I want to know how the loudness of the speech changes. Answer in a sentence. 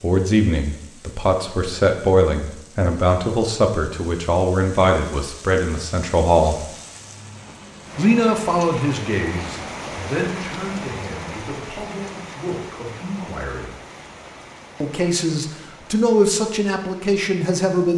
The loudness of the speech goes down, then up.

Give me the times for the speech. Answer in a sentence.
You can hear the speech from 0.0 to 6.7 s, from 8.0 to 13.7 s and from 14.8 to 17.9 s.